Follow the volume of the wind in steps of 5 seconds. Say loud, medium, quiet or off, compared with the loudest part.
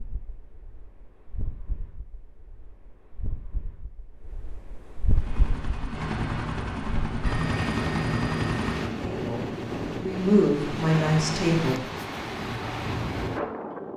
quiet, loud, loud.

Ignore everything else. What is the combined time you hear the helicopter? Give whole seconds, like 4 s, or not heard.
4 s.